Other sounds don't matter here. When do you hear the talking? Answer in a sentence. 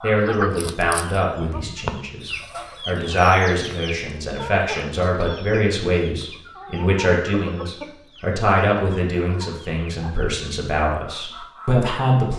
The talking can be heard from 0.0 to 12.3 s.